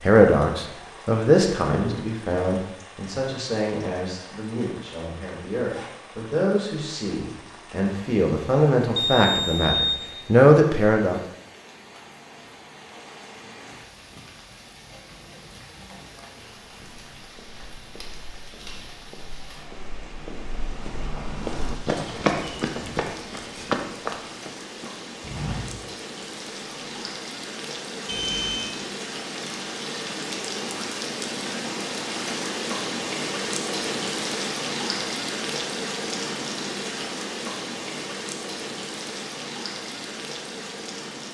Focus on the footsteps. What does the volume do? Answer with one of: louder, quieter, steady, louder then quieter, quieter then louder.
louder then quieter.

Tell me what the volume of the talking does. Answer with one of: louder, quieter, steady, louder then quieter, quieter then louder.
quieter then louder.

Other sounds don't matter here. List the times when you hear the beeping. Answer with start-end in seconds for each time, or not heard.
8.9-9.8, 28.1-28.7.